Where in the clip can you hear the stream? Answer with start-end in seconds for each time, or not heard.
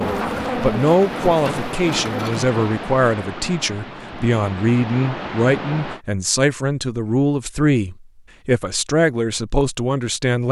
0.0-6.0.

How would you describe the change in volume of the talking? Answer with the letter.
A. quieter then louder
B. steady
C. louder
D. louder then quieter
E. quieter
B.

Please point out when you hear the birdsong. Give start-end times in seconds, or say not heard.
not heard.